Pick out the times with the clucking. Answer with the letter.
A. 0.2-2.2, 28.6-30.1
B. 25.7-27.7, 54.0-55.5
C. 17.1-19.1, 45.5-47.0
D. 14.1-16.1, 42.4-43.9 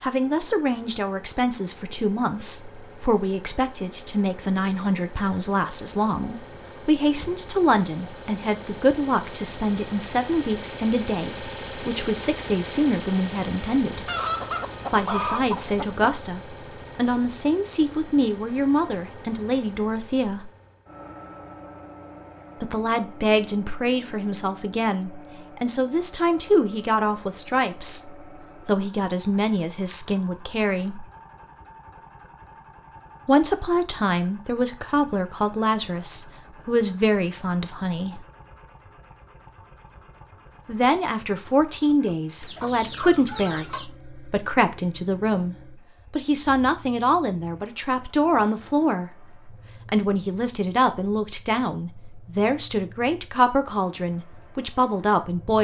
D.